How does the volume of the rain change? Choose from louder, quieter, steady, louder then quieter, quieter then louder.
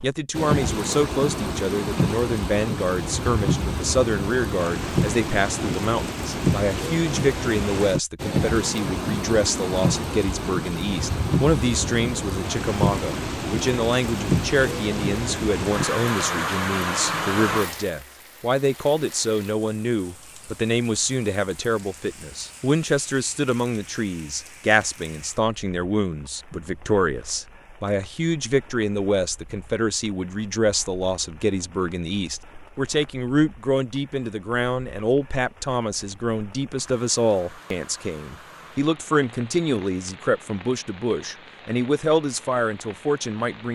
quieter then louder.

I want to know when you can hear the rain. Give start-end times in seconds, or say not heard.
0.0-43.7.